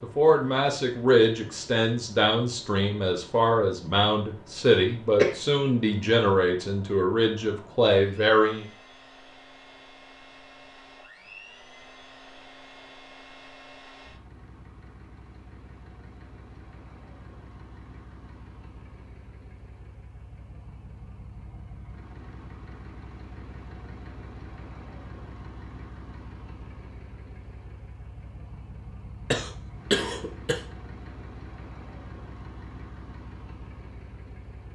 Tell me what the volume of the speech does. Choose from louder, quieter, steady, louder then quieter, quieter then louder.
steady.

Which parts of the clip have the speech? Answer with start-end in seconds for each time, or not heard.
0.0-8.7.